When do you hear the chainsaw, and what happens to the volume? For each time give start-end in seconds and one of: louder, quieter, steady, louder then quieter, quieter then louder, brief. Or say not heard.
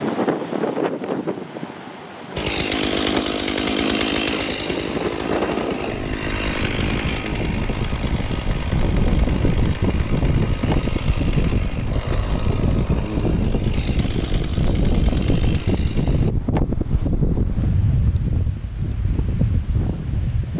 2.4-16.4 quieter.